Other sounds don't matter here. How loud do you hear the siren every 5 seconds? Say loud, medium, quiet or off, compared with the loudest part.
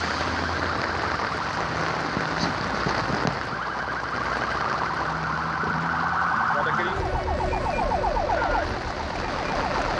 medium, loud.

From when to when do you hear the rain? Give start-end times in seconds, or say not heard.
0.0-9.9.